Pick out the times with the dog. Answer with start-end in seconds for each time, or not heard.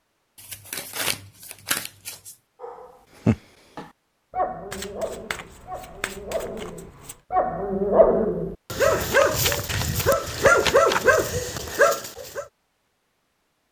2.6-12.4.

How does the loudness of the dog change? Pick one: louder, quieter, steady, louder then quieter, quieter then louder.
quieter then louder.